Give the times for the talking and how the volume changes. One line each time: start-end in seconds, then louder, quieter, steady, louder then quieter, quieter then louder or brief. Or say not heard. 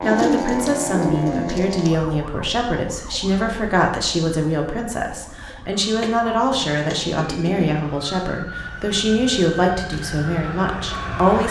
0.0-11.4 steady.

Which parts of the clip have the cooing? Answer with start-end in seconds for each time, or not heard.
0.0-1.9, 6.0-7.8.